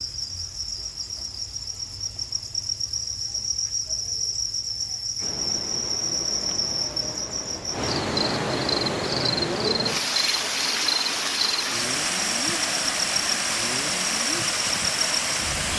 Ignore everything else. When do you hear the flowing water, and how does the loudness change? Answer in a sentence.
You can hear the flowing water from 5.2 to 15.7 s, getting louder.